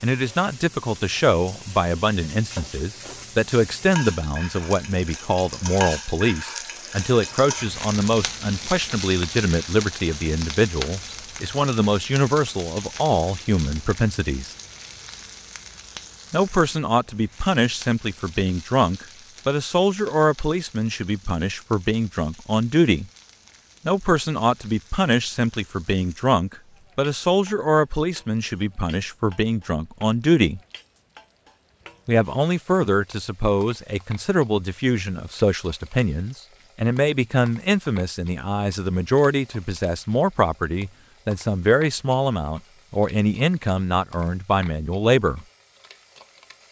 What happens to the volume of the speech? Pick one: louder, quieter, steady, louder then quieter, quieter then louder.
steady.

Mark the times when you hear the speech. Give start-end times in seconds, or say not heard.
0.0-14.6, 16.3-23.1, 23.9-30.6, 32.0-45.5.